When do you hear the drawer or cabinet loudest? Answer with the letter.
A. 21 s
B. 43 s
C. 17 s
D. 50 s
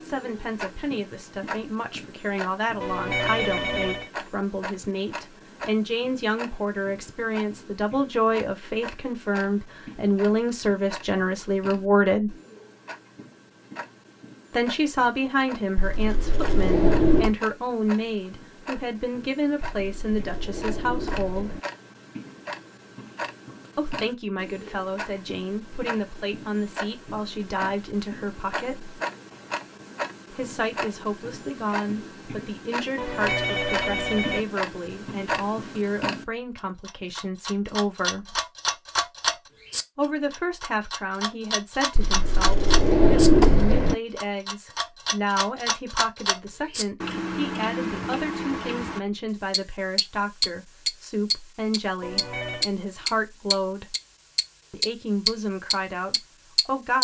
B.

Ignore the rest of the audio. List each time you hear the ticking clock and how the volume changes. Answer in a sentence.
The ticking clock can be heard from 0.0 to 56.9 s, getting louder.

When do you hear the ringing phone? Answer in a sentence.
The ringing phone can be heard from 2.8 to 4.1 s, from 33.0 to 34.5 s and from 52.0 to 52.6 s.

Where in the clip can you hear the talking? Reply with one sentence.
The talking can be heard from 0.0 to 12.3 s, from 14.5 to 21.5 s, from 23.8 to 28.9 s, from 30.3 to 38.4 s, from 40.0 to 54.0 s and from 54.7 to 56.9 s.